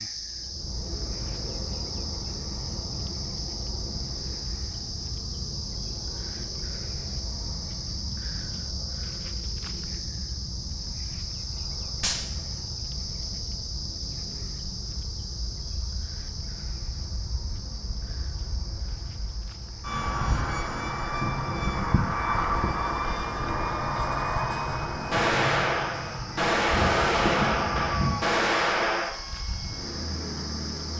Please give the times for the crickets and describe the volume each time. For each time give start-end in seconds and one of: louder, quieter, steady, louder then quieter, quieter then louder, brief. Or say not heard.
0.0-30.9 quieter then louder.